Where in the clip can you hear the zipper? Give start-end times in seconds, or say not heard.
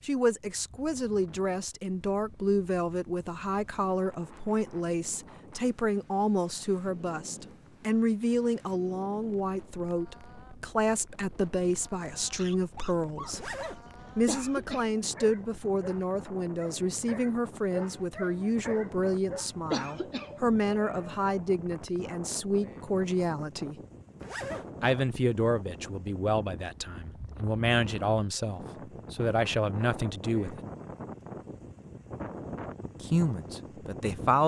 13.3-13.8, 24.2-24.7.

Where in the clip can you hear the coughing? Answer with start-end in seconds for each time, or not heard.
14.2-15.0, 19.7-20.5.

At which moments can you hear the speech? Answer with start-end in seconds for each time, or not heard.
0.0-13.5, 14.2-23.8, 24.8-30.6, 33.0-34.4.